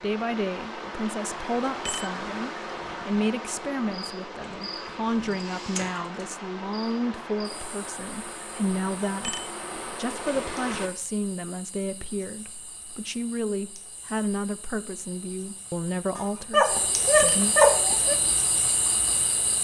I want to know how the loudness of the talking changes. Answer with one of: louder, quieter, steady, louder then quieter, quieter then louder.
steady.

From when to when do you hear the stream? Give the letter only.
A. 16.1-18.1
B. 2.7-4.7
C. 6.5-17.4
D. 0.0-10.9
D.